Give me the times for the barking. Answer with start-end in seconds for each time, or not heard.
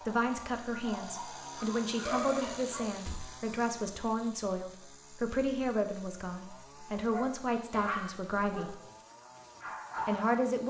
0.0-3.0, 7.0-10.4.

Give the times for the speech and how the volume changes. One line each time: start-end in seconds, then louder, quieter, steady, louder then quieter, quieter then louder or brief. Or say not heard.
0.0-8.8 steady
10.1-10.6 brief.